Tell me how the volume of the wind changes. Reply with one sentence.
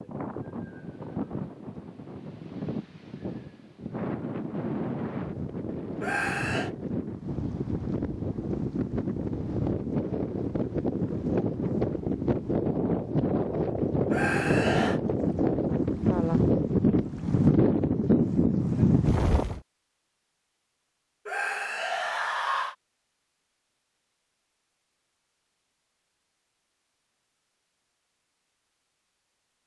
The loudness of the wind goes up.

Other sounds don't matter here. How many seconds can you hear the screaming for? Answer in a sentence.
The screaming can be heard for 3 seconds in total.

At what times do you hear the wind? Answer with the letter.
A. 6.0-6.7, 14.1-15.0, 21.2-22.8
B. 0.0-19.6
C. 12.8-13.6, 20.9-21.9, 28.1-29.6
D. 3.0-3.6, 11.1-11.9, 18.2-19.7
B.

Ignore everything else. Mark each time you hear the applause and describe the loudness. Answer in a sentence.
The applause can't be heard in this clip.